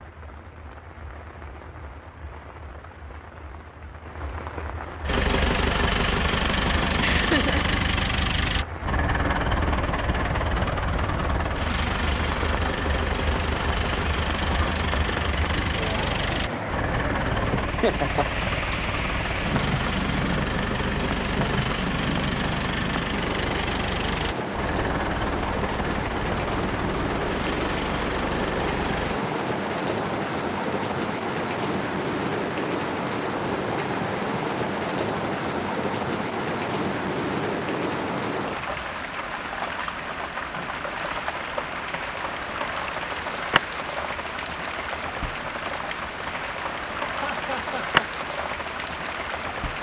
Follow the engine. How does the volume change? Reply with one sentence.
The volume of the engine goes down.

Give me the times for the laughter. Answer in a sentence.
You can hear the laughter from 7.0 to 7.7 s, from 17.5 to 18.3 s and from 47.2 to 48.0 s.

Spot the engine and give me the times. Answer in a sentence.
The engine can be heard from 5.0 to 29.2 s.